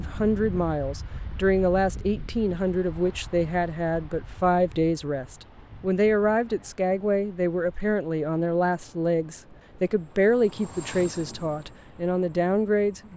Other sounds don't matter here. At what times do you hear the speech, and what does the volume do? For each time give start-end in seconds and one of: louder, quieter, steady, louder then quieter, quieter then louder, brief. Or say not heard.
0.0-13.1 steady.